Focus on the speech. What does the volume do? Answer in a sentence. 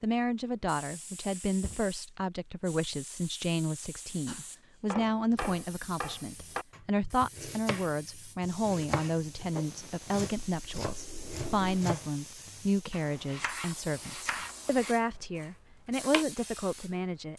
The loudness of the speech stays about the same.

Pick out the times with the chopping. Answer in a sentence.
You can hear the chopping from 4.2 to 16.2 s.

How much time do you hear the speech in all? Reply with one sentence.
The speech can be heard for 17 seconds in total.